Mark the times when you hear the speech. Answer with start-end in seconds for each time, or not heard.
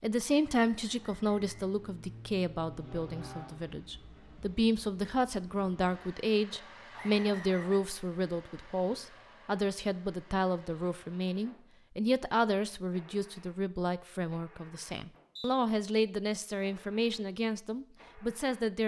0.0-18.8.